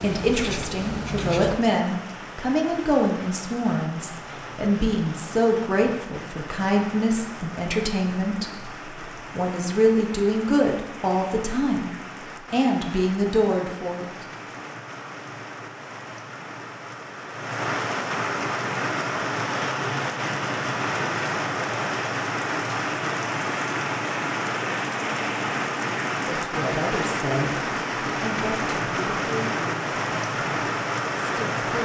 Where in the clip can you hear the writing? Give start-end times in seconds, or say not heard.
0.0-1.6.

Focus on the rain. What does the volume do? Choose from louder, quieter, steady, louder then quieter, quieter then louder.
louder.